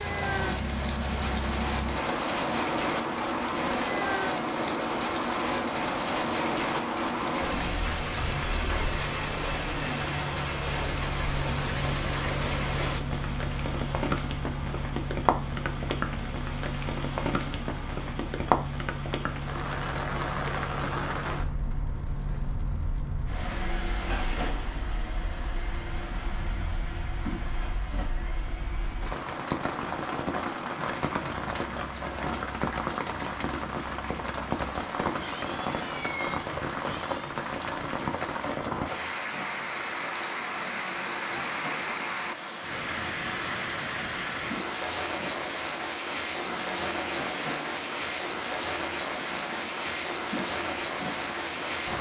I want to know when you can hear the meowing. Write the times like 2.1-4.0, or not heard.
35.1-37.4.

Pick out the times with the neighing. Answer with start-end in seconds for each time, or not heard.
not heard.